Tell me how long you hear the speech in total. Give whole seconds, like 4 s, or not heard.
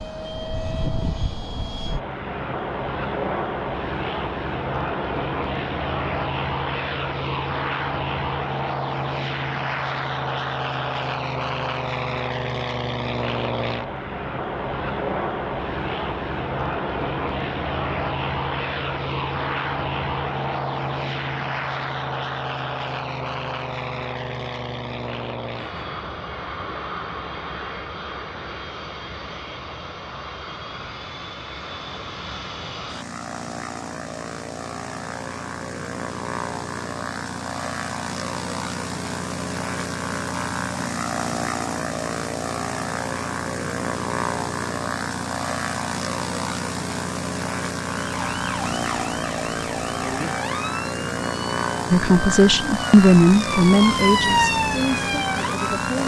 4 s.